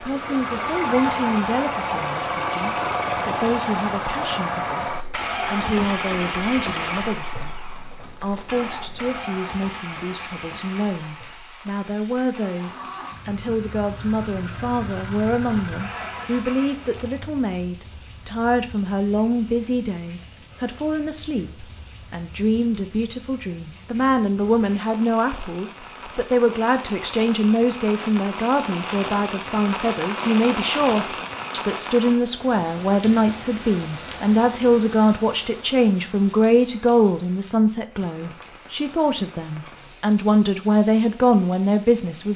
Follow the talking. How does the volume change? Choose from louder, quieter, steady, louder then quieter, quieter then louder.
louder.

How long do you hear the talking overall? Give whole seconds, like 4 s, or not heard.
42 s.